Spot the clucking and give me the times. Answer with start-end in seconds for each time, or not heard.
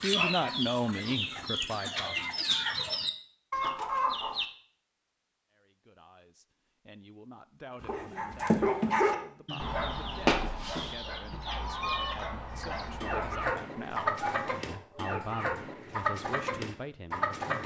0.0-4.5, 7.8-17.6.